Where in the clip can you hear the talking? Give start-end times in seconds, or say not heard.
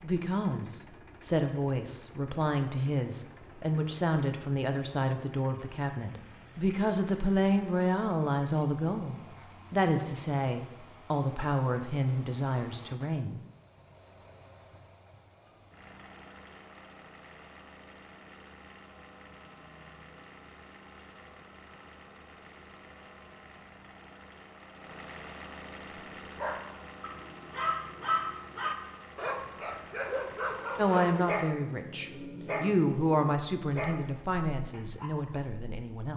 0.0-13.4, 30.8-36.1.